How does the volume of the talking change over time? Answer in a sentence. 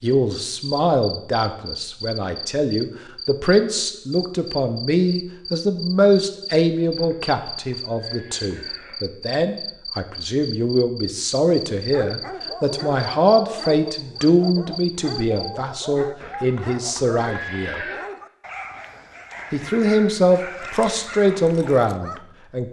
The volume of the talking stays about the same.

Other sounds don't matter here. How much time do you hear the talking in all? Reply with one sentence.
The talking can be heard for 21 seconds in total.